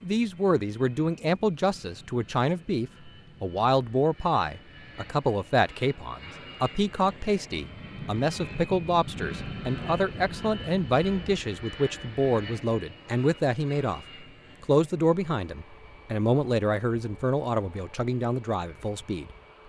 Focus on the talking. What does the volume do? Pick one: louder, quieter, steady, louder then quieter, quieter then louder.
steady.